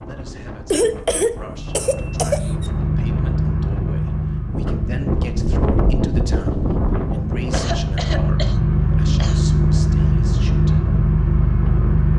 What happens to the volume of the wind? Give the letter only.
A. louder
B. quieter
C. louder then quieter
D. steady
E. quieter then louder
C.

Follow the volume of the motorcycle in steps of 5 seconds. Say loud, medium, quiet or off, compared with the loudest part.
medium, loud, loud.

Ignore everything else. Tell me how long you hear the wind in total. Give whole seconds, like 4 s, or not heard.
12 s.